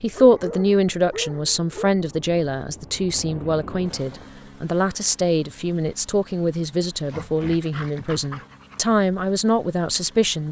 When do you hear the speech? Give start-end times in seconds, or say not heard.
0.0-10.4.